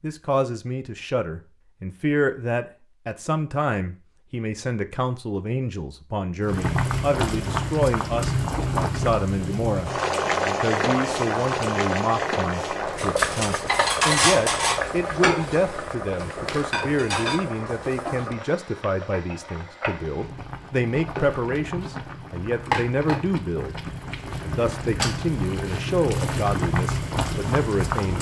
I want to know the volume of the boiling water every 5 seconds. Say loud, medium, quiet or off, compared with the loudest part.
off, loud, loud, medium, medium, loud.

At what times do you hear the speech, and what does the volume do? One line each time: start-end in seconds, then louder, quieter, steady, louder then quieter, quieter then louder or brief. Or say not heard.
0.0-28.1 steady.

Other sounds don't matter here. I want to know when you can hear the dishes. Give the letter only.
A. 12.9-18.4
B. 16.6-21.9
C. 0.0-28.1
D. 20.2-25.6
A.